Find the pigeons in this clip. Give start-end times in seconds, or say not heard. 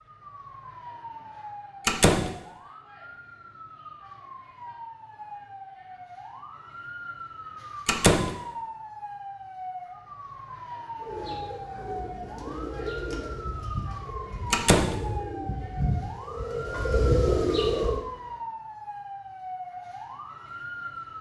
11.0-18.0.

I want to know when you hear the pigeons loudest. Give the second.
17 s.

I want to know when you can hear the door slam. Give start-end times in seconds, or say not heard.
1.9-2.3, 7.8-8.3, 14.5-14.9.